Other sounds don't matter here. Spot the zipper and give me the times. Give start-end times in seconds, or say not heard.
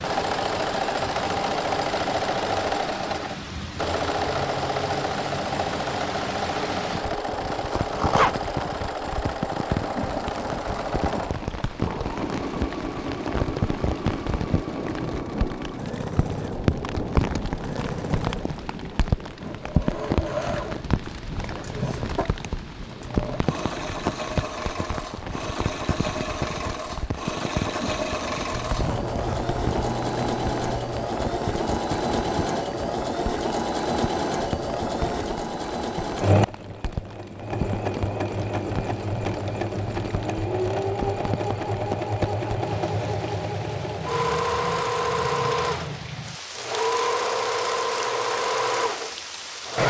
7.5-8.4, 28.5-31.0.